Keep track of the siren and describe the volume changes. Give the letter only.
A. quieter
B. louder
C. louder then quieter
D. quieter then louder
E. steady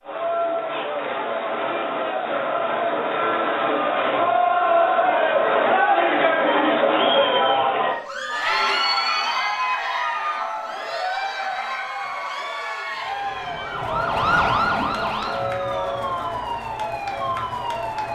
C.